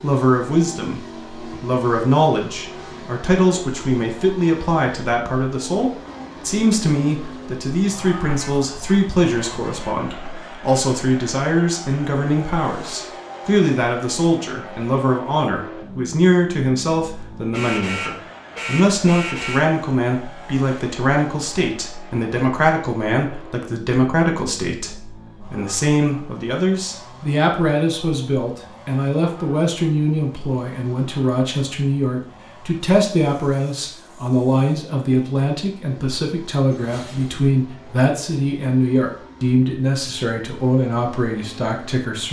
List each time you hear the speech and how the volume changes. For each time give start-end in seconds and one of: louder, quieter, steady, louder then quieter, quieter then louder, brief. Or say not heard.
0.0-42.2 steady.